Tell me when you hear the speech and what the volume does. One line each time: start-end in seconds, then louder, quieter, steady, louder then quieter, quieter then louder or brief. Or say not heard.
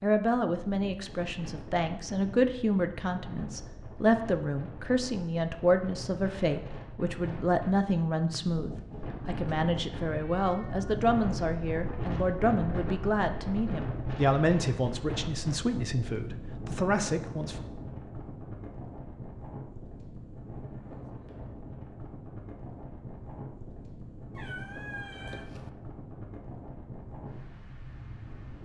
0.0-17.6 steady.